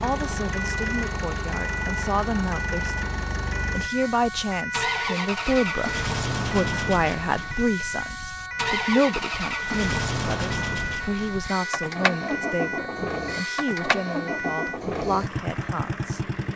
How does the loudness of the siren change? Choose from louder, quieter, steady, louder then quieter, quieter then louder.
steady.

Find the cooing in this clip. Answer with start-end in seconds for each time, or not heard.
not heard.